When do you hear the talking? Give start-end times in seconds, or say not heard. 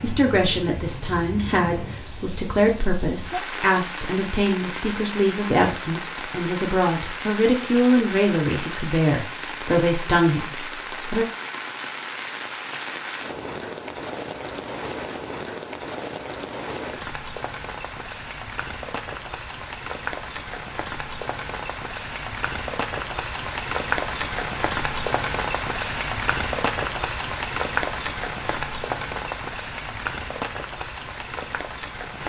0.0-11.2.